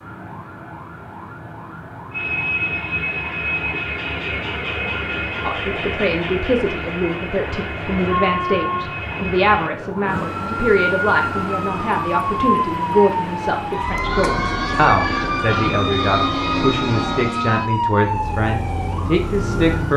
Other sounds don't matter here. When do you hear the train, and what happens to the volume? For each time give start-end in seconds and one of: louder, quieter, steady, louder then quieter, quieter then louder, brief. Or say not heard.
2.1-17.4 quieter then louder.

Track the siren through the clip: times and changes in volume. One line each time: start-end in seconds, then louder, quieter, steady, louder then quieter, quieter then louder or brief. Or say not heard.
0.0-19.9 louder.